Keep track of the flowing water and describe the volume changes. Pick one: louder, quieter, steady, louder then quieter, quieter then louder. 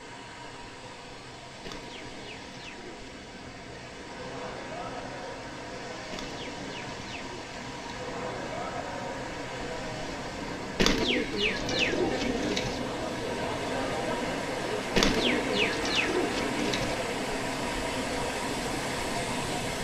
louder.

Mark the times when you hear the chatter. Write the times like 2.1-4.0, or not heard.
4.0-19.7.